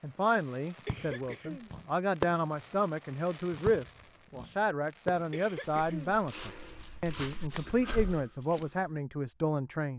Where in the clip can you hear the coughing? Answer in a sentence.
You can hear the coughing from 0.7 to 1.8 s and from 5.1 to 6.2 s.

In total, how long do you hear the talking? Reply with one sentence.
You can hear the talking for 10 seconds altogether.